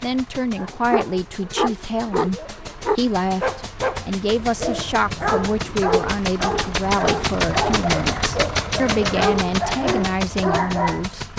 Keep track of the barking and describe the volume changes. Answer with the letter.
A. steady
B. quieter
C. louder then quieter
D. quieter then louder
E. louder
A.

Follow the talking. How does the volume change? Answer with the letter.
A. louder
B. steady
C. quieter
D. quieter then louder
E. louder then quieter
B.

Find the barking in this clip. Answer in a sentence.
The barking can be heard from 0.6 to 11.1 s.